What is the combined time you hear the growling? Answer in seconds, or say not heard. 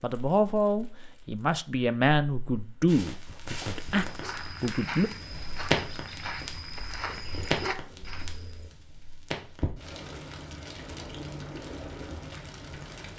2 s.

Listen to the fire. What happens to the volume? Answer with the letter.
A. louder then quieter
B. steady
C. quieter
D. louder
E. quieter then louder
A.